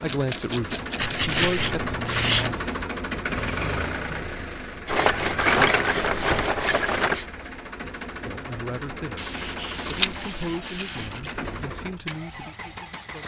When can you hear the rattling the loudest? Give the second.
6 s.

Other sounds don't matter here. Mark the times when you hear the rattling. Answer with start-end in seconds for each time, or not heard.
0.1-1.5, 4.8-7.2, 9.8-11.3.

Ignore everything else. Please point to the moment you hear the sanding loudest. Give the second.
2 s.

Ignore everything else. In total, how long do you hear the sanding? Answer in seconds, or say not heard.
6 s.